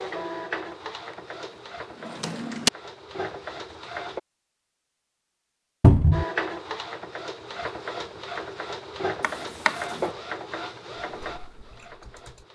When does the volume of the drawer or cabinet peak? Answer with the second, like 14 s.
6 s.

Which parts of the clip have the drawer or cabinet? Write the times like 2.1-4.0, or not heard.
2.0-2.7, 5.8-6.2, 9.2-10.1.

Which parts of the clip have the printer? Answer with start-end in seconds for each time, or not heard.
0.0-4.2, 6.1-12.5.